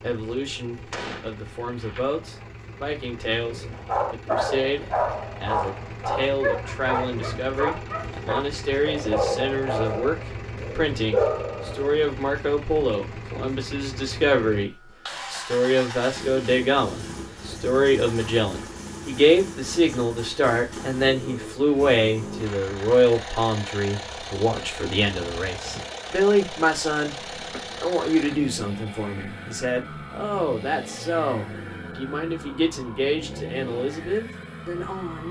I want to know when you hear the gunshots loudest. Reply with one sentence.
The volume of the gunshots peaks at 1 second.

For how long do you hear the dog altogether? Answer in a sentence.
You can hear the dog for 8 seconds altogether.